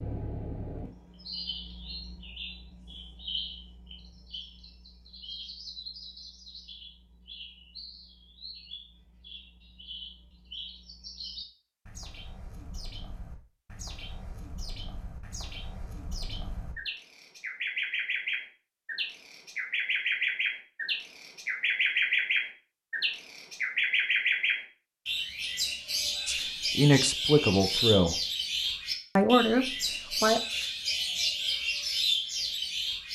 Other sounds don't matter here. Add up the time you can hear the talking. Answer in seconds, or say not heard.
3 s.